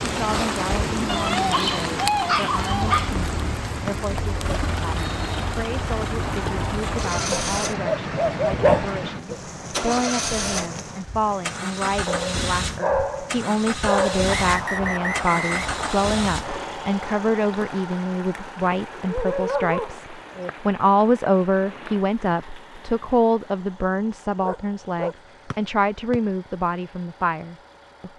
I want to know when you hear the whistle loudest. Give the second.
15 s.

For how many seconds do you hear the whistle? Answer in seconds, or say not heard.
4 s.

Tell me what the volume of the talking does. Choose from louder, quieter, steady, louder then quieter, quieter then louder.
louder.